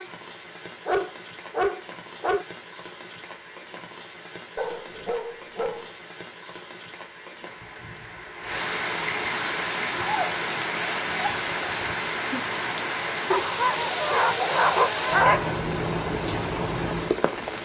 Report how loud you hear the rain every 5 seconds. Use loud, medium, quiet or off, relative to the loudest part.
quiet, medium, loud, loud.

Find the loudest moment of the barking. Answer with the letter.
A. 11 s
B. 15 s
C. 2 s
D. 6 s
B.